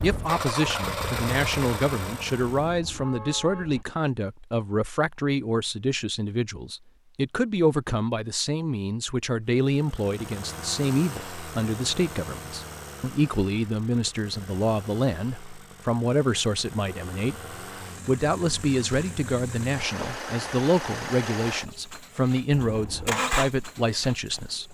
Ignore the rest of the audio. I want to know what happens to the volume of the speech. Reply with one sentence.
The loudness of the speech stays about the same.